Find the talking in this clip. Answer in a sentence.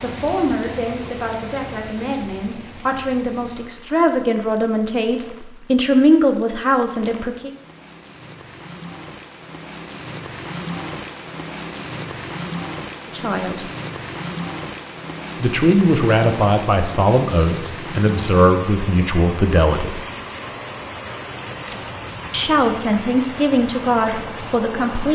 You can hear the talking from 0.0 to 7.5 s, from 13.2 to 13.6 s, from 15.4 to 20.0 s and from 22.3 to 25.1 s.